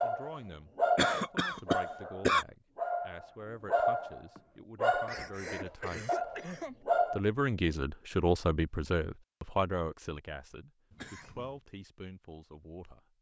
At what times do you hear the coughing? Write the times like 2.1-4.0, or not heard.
0.9-2.5, 5.0-6.8, 10.9-11.6.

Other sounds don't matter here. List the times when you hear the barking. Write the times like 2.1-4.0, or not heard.
0.0-7.2.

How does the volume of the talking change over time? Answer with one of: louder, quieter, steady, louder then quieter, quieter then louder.
louder then quieter.